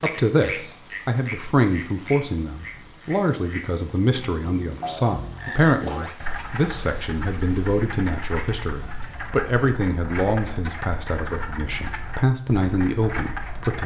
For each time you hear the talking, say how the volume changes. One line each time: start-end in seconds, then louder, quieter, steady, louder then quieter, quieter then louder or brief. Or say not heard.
0.0-13.8 steady.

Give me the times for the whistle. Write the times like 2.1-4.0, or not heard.
not heard.